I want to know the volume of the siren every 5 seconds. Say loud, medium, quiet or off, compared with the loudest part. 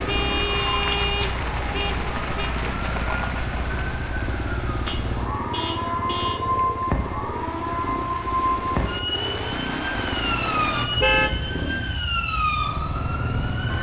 medium, loud, loud.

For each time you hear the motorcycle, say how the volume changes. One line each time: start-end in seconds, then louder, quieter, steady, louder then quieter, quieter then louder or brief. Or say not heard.
0.0-13.7 steady.